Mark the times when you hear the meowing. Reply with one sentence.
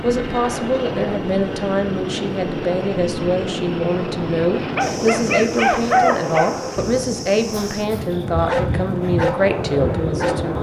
You can't hear the meowing here.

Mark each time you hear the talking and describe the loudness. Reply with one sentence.
You can hear the talking from 0.0 to 10.5 s, at a steady volume.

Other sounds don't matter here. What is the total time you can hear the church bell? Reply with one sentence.
The church bell can't be heard in this clip.